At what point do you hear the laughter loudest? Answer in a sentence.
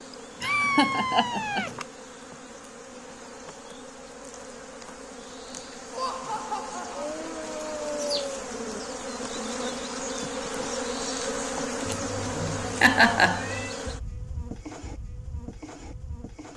The loudest moment of the laughter is at 13 seconds.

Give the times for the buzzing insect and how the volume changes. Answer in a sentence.
You can hear the buzzing insect from 0.0 to 16.5 s, getting louder then quieter.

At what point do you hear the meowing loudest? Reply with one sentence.
The volume of the meowing peaks at 1 second.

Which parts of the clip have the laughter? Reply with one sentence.
You can hear the laughter from 0.4 to 1.6 s, from 5.9 to 7.2 s and from 11.9 to 13.4 s.